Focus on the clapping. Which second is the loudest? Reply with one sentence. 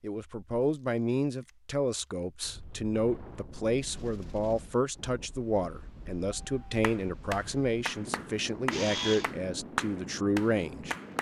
The volume of the clapping peaks at 10 seconds.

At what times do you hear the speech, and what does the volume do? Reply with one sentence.
The speech can be heard from 0.0 to 10.9 s, at a steady volume.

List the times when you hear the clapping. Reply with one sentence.
The clapping can be heard from 6.8 to 11.1 s.